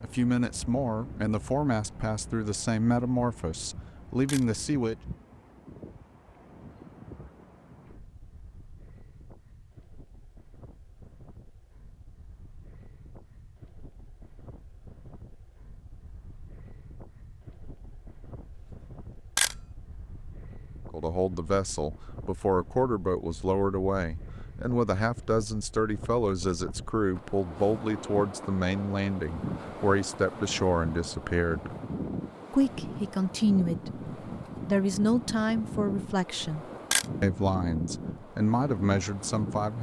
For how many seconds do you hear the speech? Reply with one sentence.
You can hear the speech for 23 seconds altogether.